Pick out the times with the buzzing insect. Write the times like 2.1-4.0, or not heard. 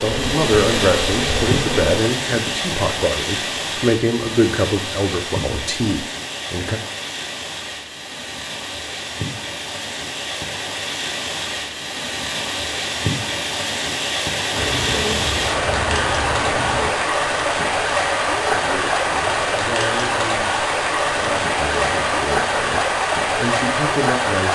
0.0-2.0, 14.6-16.9.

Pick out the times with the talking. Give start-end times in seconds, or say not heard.
0.0-6.8, 18.4-24.5.